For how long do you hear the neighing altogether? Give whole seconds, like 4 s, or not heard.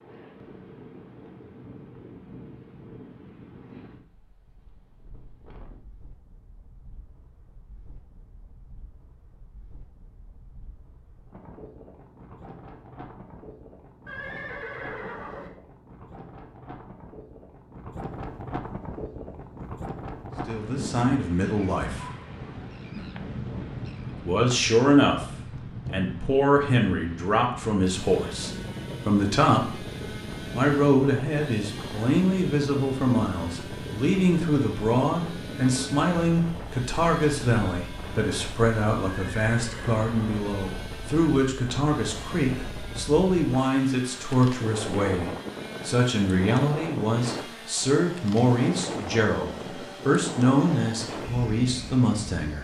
3 s.